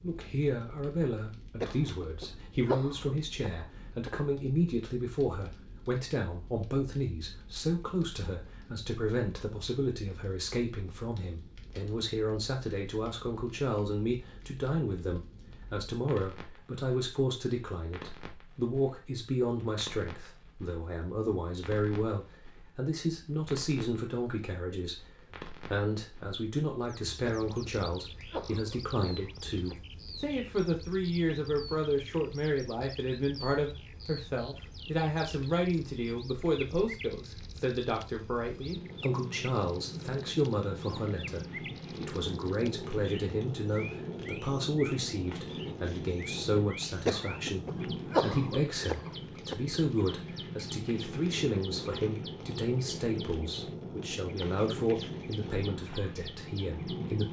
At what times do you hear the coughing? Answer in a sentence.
The coughing can be heard from 1.6 to 4.1 s, from 27.4 to 29.8 s and from 47.0 to 49.5 s.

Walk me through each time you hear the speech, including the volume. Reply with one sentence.
The speech can be heard from 0.0 to 57.2 s, at a steady volume.